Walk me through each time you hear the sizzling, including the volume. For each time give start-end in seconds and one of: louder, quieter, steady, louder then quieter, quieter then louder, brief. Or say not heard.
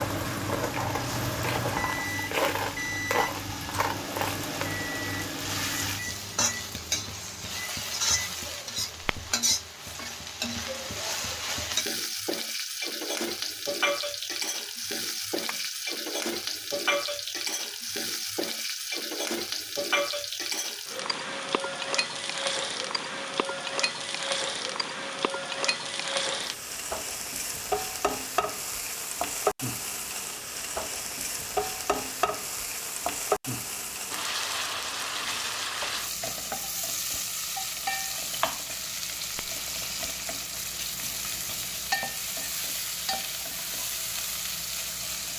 0.0-45.3 steady.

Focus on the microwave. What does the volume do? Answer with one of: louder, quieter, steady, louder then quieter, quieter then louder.
quieter.